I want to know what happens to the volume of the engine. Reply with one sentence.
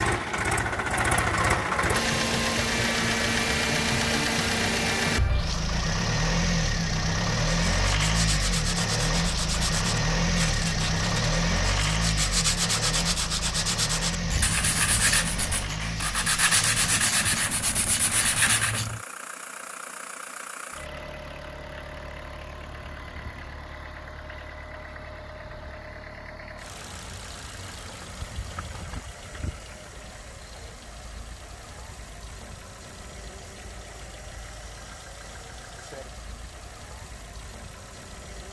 The loudness of the engine goes down.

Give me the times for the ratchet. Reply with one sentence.
The ratchet can be heard from 14.2 to 19.1 s.